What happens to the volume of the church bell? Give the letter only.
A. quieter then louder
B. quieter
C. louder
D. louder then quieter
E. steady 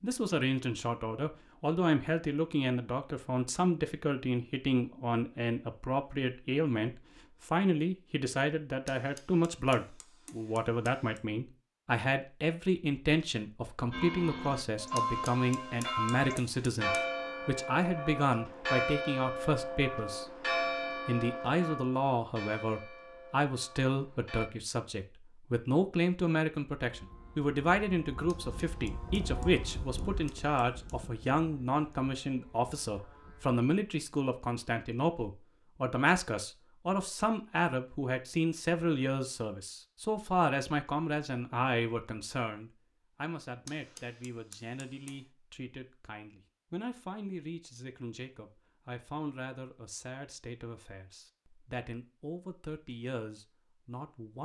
B.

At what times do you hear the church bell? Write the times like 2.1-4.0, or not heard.
13.9-24.5.